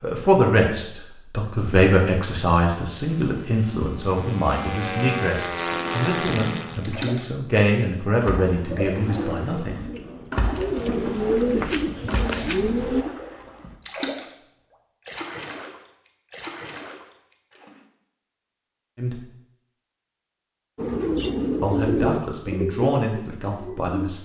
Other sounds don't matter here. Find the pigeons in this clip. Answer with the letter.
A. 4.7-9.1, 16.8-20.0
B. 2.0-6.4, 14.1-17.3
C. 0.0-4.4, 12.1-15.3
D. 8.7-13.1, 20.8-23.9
D.